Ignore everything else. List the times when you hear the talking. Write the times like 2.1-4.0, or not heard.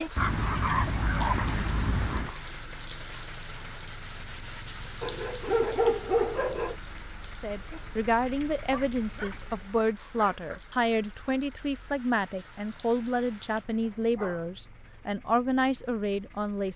7.4-16.7.